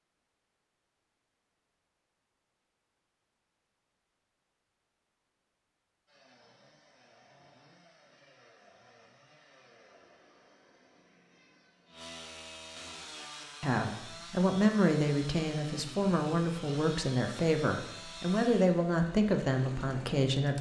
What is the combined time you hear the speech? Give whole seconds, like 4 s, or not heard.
7 s.